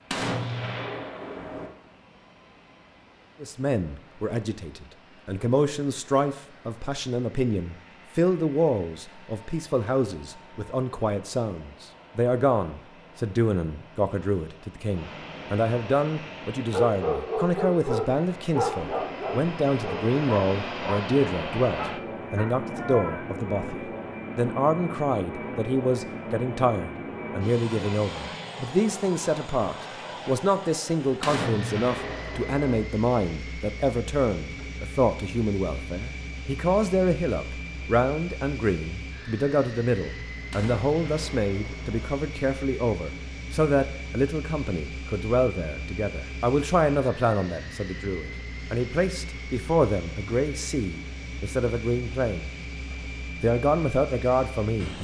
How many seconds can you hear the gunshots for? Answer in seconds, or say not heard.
5 s.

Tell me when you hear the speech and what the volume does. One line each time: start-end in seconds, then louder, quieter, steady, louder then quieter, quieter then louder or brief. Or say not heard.
3.4-54.9 steady.